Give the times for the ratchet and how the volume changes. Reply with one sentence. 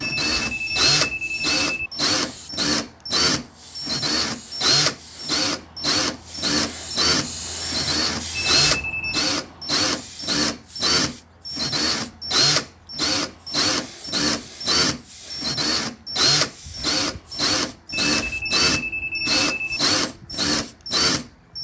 The ratchet can't be heard in this clip.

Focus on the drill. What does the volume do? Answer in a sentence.
The loudness of the drill stays about the same.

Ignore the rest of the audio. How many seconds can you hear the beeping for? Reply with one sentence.
The beeping can be heard for 5 seconds in total.